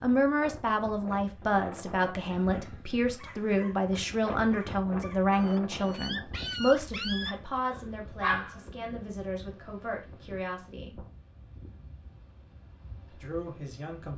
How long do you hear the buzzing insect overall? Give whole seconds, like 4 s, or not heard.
not heard.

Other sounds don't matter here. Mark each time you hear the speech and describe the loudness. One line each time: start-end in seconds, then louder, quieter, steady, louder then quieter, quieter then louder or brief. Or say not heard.
0.0-11.0 quieter
13.1-14.1 brief.